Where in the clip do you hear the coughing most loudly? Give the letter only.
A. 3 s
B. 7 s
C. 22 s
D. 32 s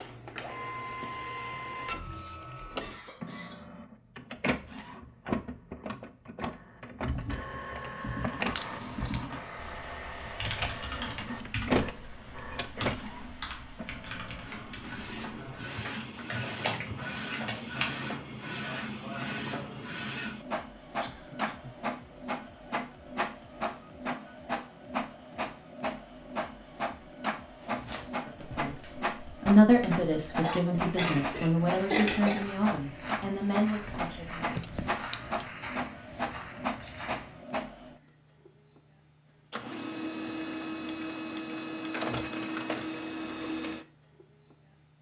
D.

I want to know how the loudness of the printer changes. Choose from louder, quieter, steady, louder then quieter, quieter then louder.
steady.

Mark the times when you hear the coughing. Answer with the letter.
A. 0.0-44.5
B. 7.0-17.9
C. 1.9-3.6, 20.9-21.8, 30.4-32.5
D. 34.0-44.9
C.